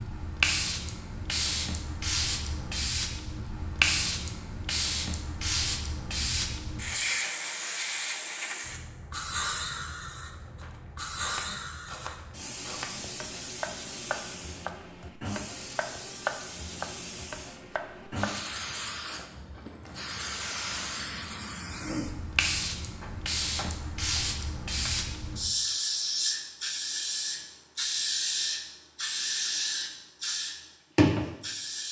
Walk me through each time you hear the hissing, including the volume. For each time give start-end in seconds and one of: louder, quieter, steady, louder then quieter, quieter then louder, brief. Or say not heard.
0.0-31.8 quieter then louder.